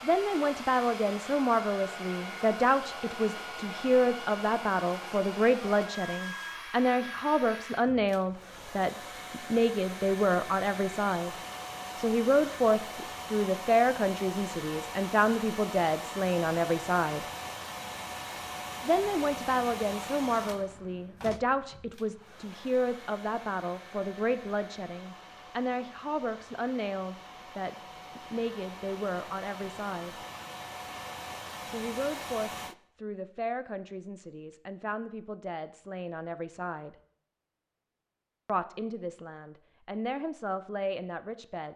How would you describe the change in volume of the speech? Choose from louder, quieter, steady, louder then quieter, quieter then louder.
quieter.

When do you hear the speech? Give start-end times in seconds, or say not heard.
0.0-11.3, 11.9-17.2, 18.8-30.2, 31.6-37.0, 38.5-41.7.